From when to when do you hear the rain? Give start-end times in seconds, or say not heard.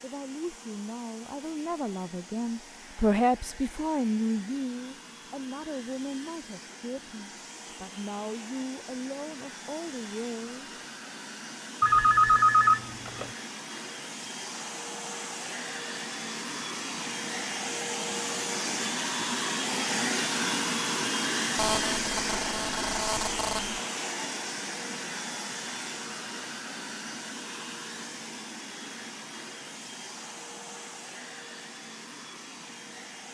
not heard.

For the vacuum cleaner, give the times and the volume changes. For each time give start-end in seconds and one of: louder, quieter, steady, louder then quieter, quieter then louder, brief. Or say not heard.
0.0-33.2 louder then quieter.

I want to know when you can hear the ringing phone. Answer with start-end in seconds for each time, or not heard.
11.8-13.3, 21.6-23.8.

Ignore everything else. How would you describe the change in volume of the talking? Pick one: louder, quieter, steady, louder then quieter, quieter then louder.
louder then quieter.